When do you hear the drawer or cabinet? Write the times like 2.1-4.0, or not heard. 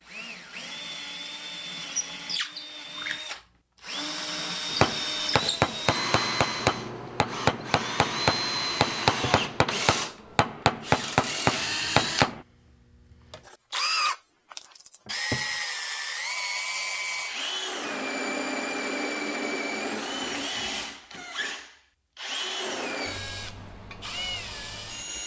9.0-9.4, 15.1-15.5.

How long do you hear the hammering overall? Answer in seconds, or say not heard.
8 s.